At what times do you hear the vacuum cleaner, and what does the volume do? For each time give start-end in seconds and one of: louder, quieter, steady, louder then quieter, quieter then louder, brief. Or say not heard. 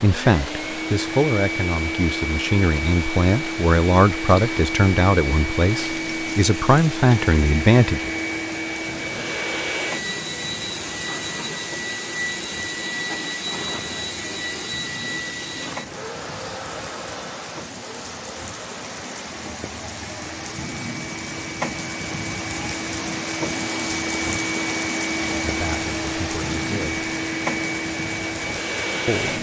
0.0-29.3 quieter then louder.